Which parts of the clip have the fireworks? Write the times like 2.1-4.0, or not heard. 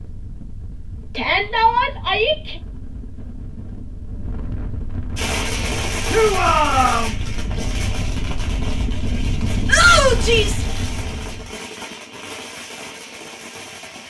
5.2-14.0.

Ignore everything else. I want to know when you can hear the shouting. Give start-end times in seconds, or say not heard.
1.1-2.5, 6.1-7.2, 9.7-10.6.